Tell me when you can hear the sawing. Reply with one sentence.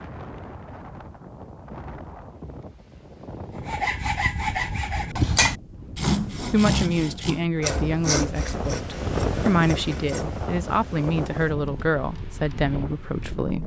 You can hear the sawing from 3.6 to 10.4 s.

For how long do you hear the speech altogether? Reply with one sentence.
You can hear the speech for 7 seconds altogether.